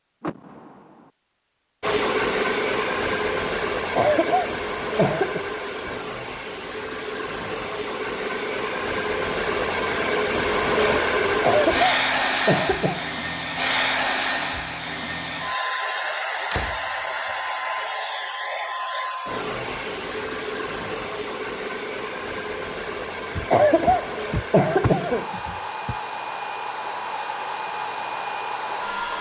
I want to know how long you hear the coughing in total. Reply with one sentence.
You can hear the coughing for 5 seconds altogether.